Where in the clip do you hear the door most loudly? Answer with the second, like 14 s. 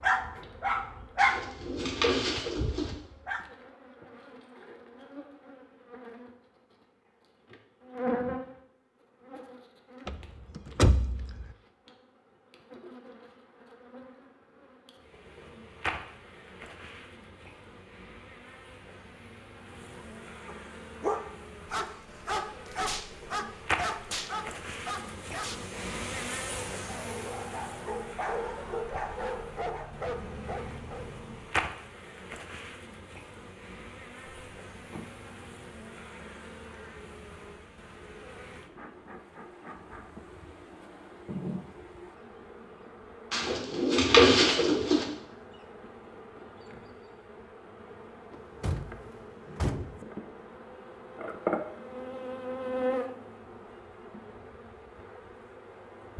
11 s.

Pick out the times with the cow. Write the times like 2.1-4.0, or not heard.
not heard.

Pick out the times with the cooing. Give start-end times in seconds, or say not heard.
1.1-3.0, 43.3-45.0.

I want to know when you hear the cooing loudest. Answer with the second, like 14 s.
44 s.